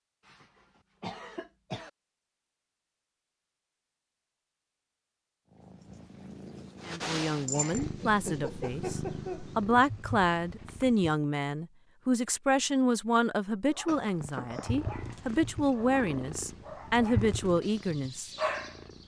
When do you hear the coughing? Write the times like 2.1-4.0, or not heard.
0.2-1.9, 7.5-9.4, 13.8-14.8.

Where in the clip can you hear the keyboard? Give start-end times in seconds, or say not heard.
not heard.